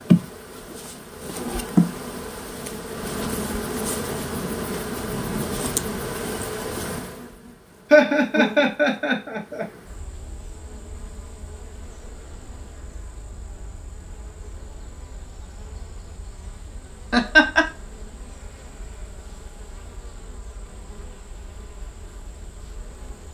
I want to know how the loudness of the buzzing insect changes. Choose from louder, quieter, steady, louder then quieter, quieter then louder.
quieter.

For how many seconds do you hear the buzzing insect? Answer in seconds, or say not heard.
23 s.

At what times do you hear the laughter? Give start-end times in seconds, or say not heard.
7.9-9.7, 17.1-17.6.